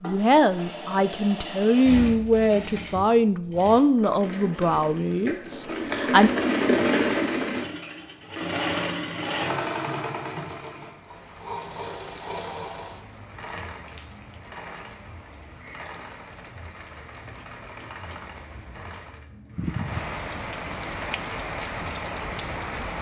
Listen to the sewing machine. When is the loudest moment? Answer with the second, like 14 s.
7 s.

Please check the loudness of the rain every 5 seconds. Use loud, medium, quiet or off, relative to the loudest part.
off, off, quiet, medium, loud.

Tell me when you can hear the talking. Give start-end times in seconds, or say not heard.
0.0-6.3.